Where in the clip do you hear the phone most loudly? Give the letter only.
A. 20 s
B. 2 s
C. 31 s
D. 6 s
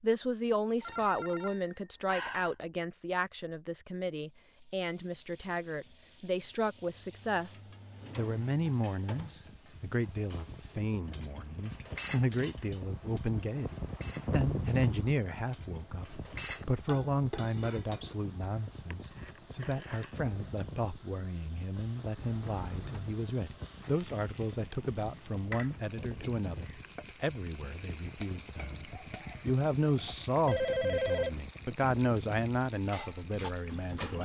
C.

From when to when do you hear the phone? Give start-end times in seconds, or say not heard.
0.8-2.5, 18.9-20.1, 30.4-31.4.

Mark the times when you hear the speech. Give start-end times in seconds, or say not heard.
0.0-34.2.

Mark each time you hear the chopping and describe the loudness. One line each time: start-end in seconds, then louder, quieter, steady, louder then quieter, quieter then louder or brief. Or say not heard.
not heard.